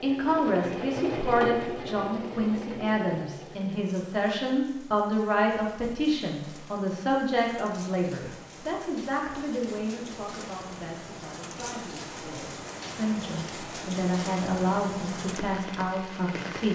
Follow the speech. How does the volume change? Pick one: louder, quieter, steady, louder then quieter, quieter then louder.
quieter then louder.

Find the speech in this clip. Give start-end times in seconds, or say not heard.
0.0-16.7.